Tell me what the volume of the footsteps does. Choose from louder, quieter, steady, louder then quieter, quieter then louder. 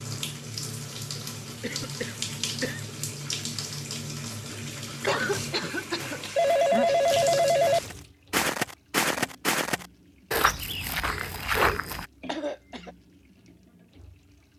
louder.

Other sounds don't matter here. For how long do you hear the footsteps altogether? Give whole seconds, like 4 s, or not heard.
6 s.